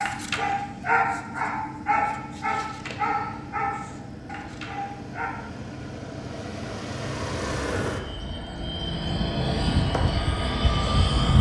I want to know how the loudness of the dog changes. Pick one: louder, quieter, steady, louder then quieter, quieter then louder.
quieter.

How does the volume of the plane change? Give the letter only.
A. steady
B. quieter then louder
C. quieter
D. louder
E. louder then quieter
D.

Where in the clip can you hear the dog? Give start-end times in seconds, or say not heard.
0.0-5.3.